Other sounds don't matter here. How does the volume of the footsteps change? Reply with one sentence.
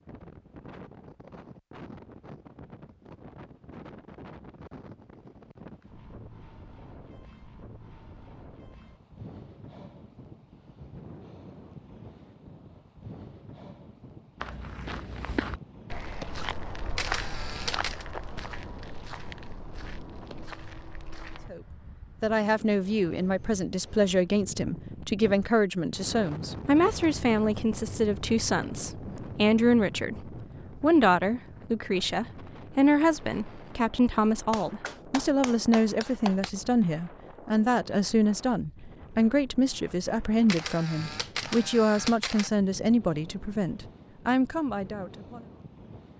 The loudness of the footsteps goes down.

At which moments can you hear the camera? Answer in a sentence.
You can hear the camera from 16.9 to 18.1 s and from 40.5 to 42.5 s.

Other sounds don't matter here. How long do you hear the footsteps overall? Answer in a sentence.
You can hear the footsteps for 7 seconds altogether.